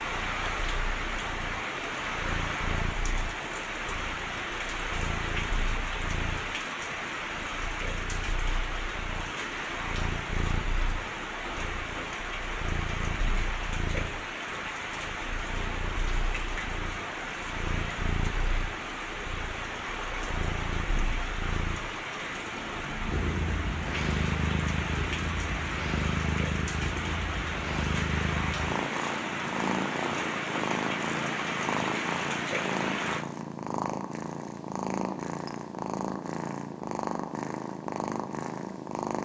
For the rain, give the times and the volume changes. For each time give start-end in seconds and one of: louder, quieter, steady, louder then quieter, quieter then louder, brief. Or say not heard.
0.0-33.2 steady.